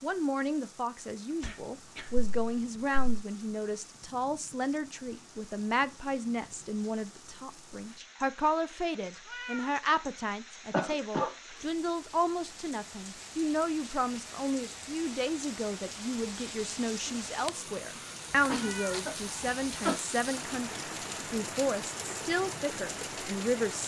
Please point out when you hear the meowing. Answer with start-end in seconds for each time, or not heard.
9.2-9.8, 18.6-19.1.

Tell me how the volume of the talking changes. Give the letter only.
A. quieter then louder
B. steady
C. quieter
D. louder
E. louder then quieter
B.